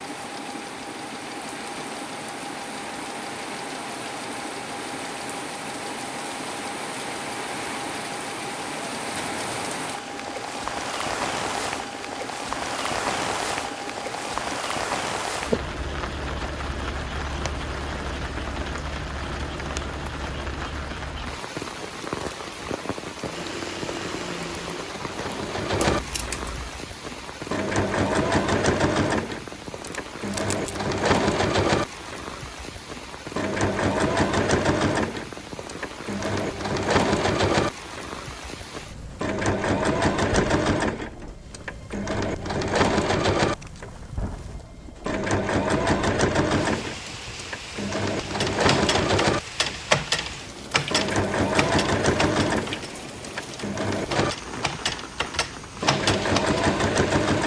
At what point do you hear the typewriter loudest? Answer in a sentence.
The volume of the typewriter peaks at 50 seconds.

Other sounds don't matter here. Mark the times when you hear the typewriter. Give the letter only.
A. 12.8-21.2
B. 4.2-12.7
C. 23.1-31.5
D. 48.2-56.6
D.